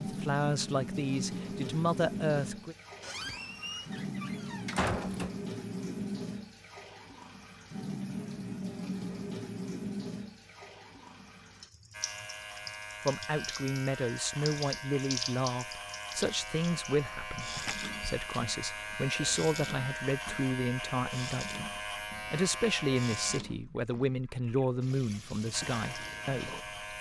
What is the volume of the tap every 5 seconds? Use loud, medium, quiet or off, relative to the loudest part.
loud, loud, medium, loud, medium, medium.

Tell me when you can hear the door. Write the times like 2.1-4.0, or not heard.
3.0-5.3, 17.6-18.4.